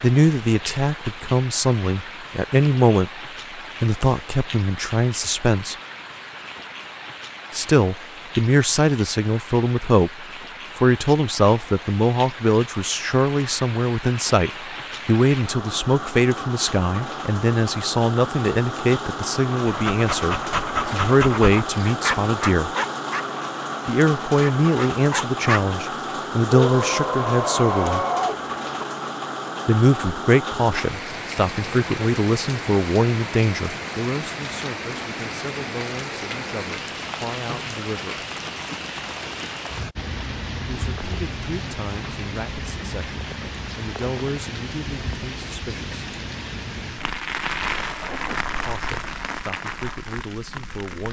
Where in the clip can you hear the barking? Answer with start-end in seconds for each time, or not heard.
19.6-23.2, 24.2-25.6, 26.5-28.9.